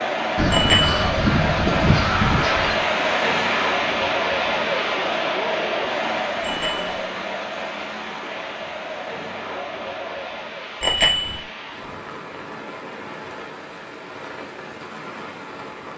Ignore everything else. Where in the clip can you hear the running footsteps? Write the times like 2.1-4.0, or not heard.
not heard.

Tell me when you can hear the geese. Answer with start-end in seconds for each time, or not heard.
0.3-2.8.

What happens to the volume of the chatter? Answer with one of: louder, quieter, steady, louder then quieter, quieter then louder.
quieter.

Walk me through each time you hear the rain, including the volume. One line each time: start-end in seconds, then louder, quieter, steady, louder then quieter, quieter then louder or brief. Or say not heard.
0.0-15.9 quieter.